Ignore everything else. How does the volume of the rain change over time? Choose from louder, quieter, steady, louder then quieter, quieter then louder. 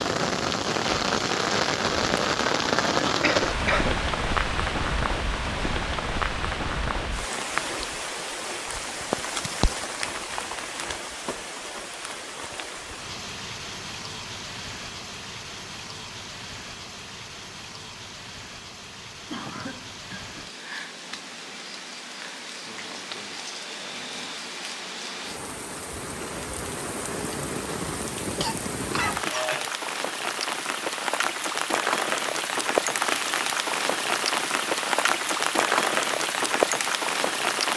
quieter then louder.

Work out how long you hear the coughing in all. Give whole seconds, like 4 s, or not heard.
4 s.